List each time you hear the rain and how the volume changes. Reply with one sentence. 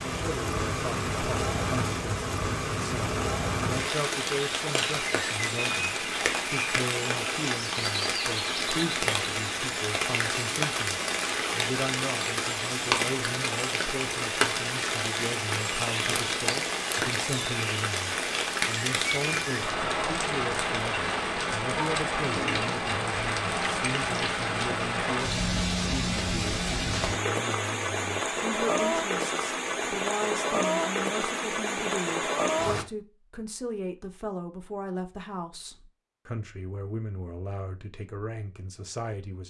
The rain can be heard from 0.0 to 32.9 s, at a steady volume.